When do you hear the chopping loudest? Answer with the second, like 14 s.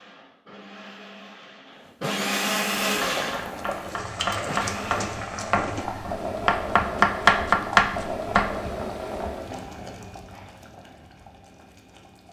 7 s.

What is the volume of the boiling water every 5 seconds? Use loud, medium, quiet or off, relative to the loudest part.
loud, loud, quiet.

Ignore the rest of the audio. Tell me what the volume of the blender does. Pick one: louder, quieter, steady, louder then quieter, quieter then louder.
louder then quieter.